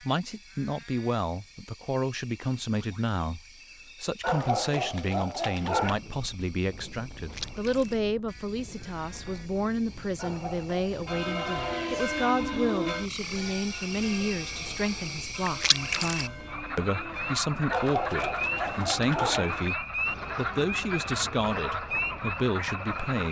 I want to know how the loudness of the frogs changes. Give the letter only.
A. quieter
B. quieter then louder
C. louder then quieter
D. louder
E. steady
D.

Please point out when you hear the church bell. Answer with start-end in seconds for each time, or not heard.
10.9-22.1.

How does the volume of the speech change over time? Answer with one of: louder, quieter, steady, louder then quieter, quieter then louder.
steady.